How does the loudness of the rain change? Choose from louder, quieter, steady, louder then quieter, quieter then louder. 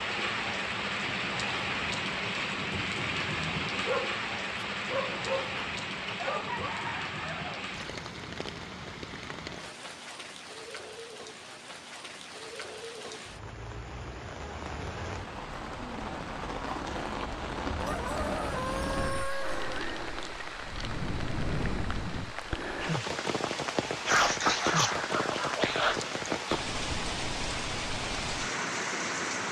quieter then louder.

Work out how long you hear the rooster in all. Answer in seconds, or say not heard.
3 s.